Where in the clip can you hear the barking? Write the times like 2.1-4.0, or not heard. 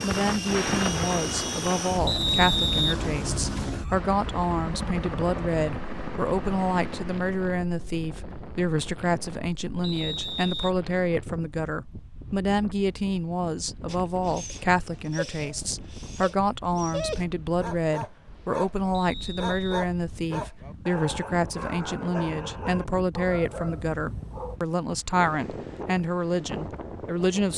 13.8-24.6.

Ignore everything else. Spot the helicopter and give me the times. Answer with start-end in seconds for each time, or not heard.
0.0-7.4.